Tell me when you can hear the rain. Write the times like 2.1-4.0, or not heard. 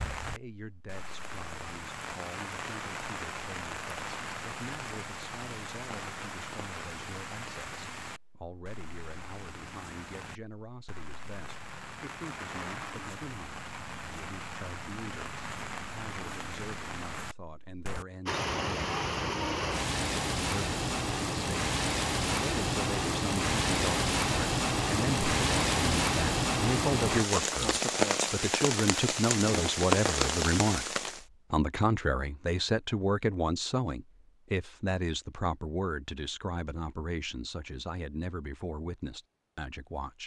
0.0-31.2.